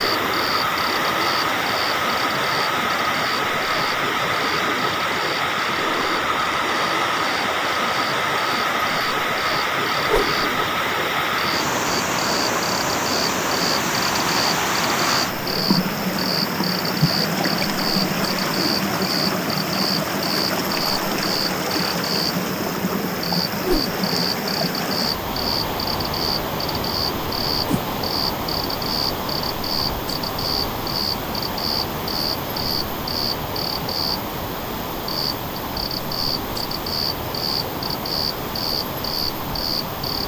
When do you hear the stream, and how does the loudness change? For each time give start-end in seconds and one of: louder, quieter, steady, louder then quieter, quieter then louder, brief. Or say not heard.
0.0-40.2 quieter.